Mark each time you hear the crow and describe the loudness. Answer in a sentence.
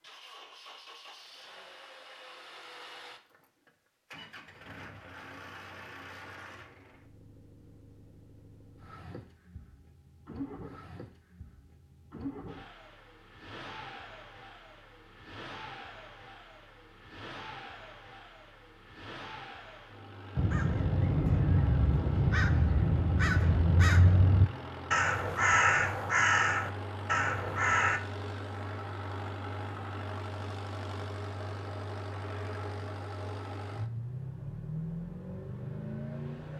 The crow can be heard from 20.4 to 28.0 s, at a steady volume.